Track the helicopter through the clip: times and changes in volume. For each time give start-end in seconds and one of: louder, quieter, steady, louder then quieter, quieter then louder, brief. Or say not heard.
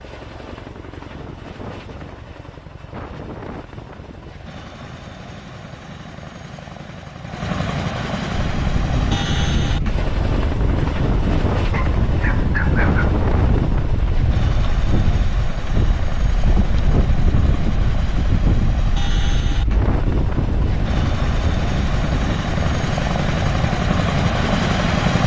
0.0-25.2 louder.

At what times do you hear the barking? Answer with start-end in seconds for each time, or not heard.
11.7-13.2.